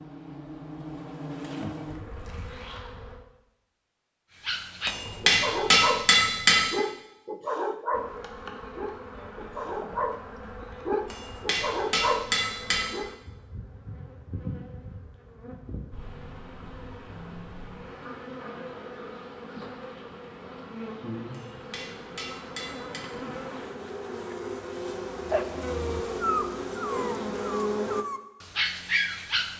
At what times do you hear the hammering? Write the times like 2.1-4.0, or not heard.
4.8-6.7, 11.1-12.9, 21.3-23.0.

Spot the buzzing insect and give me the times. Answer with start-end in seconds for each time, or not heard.
0.0-3.2, 7.9-28.1.